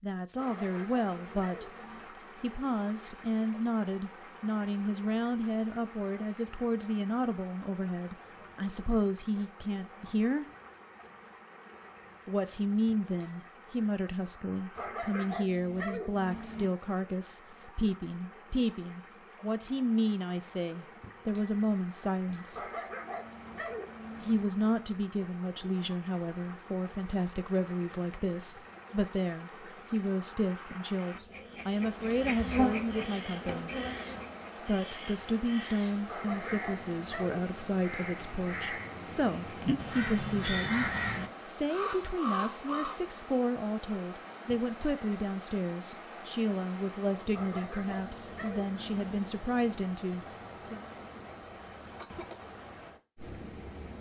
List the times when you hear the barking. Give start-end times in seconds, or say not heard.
0.3-2.1, 14.8-16.7, 22.5-24.4, 36.0-37.5, 47.3-49.2.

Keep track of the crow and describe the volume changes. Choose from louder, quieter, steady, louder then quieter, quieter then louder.
louder.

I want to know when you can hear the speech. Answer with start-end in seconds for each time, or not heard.
0.0-1.7, 2.4-10.4, 12.2-22.6, 24.2-33.8, 34.6-50.8.